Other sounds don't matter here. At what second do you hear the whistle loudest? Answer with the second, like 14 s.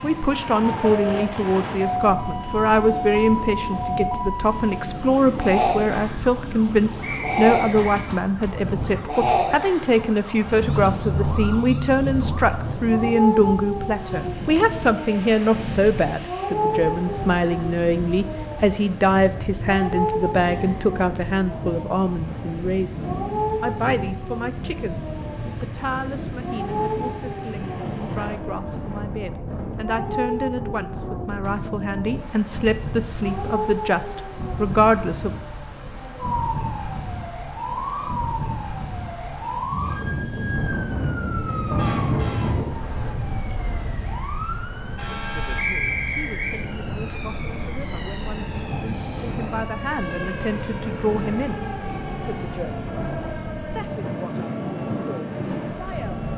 46 s.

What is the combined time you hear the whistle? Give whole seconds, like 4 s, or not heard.
2 s.